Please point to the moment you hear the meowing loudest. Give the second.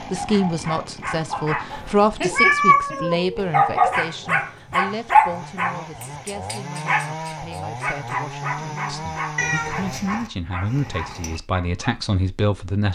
3 s.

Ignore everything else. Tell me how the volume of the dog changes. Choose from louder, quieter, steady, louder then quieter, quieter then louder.
louder then quieter.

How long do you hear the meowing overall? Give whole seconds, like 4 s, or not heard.
4 s.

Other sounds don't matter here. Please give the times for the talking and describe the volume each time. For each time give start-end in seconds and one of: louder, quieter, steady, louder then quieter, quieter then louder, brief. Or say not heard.
0.0-12.9 quieter then louder.